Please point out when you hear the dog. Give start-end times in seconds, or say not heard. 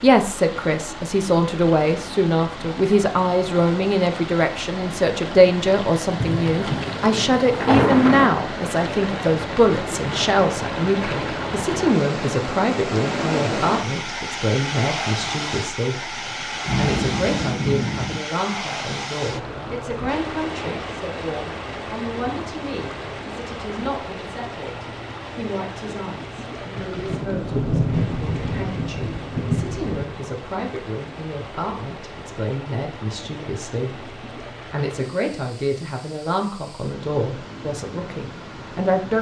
not heard.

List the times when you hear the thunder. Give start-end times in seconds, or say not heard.
6.2-8.3, 16.6-18.2, 26.8-30.1.